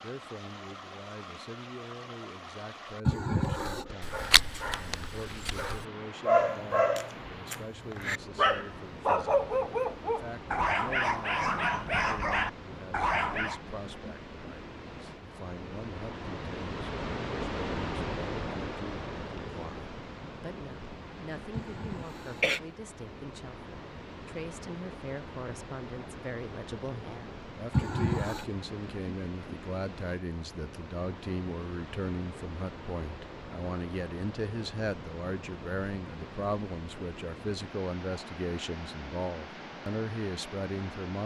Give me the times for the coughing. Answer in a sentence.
You can hear the coughing from 3.0 to 3.9 s, from 21.6 to 22.6 s and from 27.7 to 28.4 s.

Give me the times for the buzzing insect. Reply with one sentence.
The buzzing insect can't be heard in this clip.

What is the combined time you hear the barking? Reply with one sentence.
You can hear the barking for 10 seconds altogether.